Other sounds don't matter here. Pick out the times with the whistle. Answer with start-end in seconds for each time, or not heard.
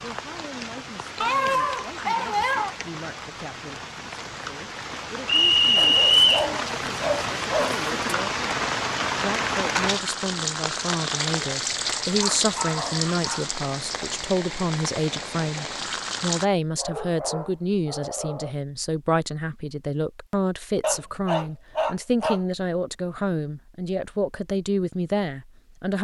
5.2-6.5.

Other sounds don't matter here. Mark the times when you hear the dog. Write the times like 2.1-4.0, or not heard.
1.2-2.8, 5.8-8.2, 12.2-13.5, 16.8-18.6, 20.8-22.4.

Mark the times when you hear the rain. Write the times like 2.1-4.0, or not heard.
0.0-16.4.